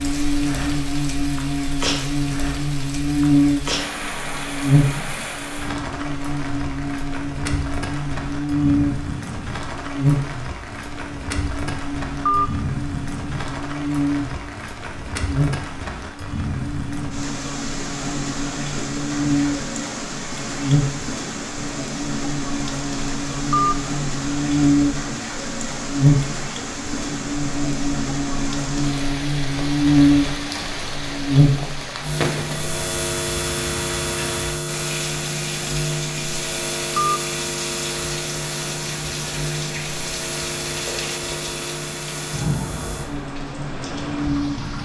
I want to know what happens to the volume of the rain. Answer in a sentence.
The loudness of the rain stays about the same.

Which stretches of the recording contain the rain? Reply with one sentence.
You can hear the rain from 0.0 to 44.8 s.